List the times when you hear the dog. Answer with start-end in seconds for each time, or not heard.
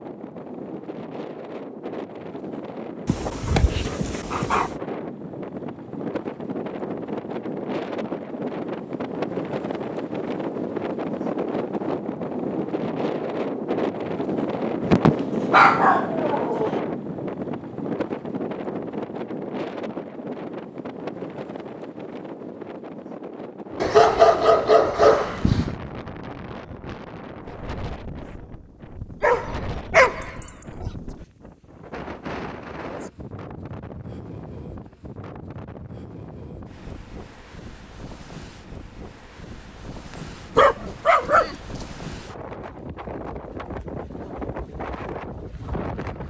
3.0-4.8, 14.8-16.8, 23.8-25.8, 29.2-30.3, 40.5-41.8.